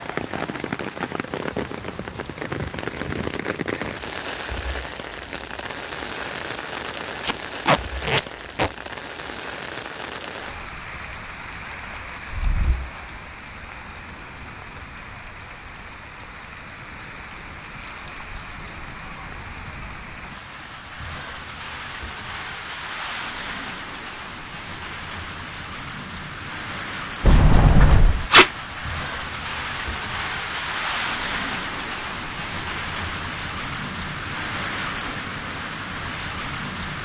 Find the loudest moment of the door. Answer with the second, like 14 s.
28 s.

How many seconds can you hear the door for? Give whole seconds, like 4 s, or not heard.
2 s.